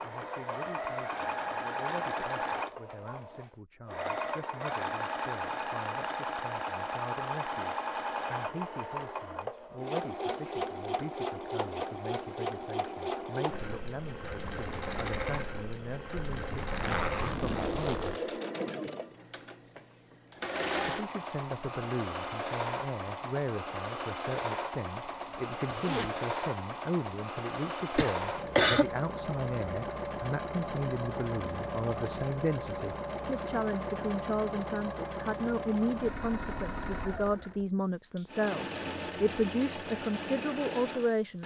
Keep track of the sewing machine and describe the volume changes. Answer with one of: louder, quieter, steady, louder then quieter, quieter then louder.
steady.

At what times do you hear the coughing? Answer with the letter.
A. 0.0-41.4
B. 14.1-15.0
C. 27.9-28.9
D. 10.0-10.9
C.